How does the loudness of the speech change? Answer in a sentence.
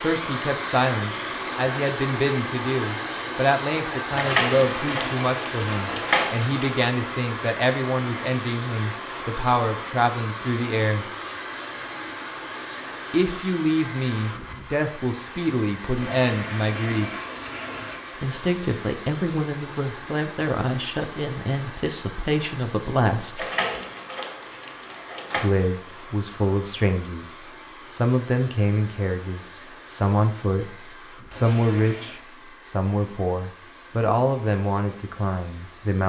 The loudness of the speech stays about the same.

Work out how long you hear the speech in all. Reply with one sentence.
You can hear the speech for 31 seconds altogether.